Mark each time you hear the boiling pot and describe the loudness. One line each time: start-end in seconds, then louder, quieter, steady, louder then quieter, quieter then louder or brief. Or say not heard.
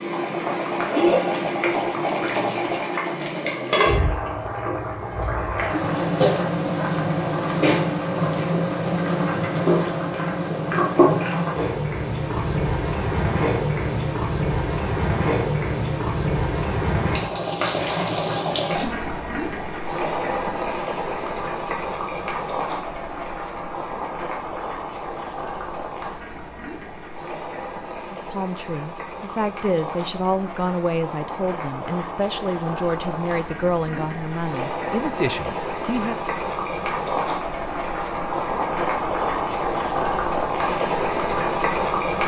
0.0-42.2 quieter then louder.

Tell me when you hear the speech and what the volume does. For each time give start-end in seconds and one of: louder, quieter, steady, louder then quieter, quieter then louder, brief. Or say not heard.
28.1-36.2 steady.